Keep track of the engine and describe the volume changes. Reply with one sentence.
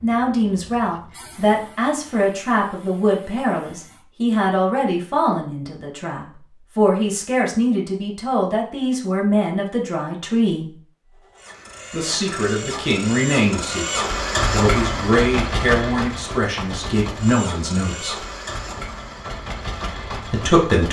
The volume of the engine goes up, then down.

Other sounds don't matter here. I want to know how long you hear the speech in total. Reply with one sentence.
You can hear the speech for 18 seconds altogether.